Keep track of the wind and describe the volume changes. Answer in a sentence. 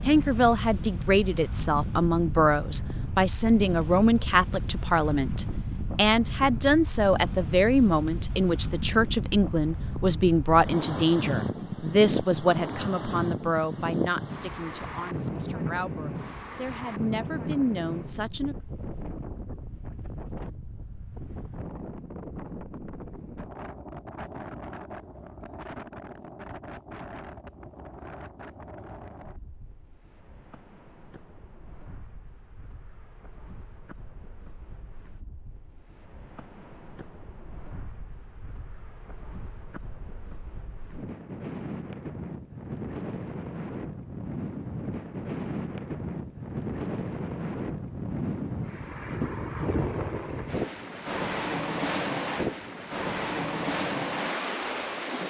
The loudness of the wind goes down, then up.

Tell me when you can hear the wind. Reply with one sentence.
The wind can be heard from 0.0 to 55.2 s.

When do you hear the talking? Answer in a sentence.
The talking can be heard from 0.0 to 18.6 s.